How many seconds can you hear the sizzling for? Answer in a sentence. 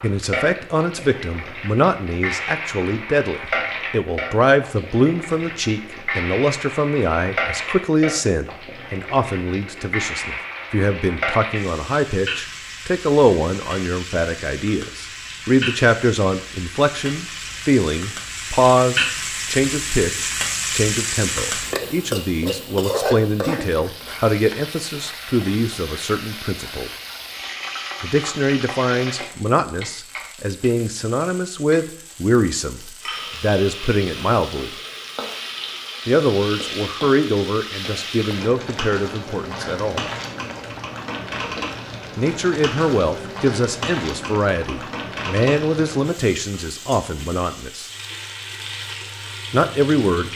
You can hear the sizzling for 50 seconds altogether.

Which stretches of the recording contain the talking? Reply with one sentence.
You can hear the talking from 0.0 to 26.9 s, from 28.0 to 34.7 s, from 36.0 to 40.1 s, from 42.1 to 47.9 s and from 49.5 to 50.3 s.